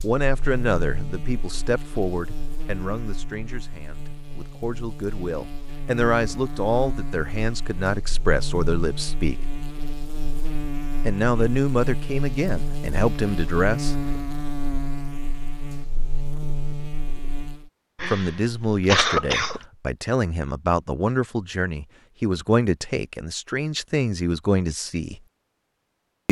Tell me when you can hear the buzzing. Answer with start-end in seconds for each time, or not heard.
0.0-17.7.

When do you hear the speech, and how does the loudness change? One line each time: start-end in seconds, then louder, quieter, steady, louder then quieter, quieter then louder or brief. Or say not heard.
0.0-9.4 quieter then louder
11.1-13.9 brief
18.1-25.2 steady.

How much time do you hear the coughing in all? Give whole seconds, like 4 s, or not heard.
2 s.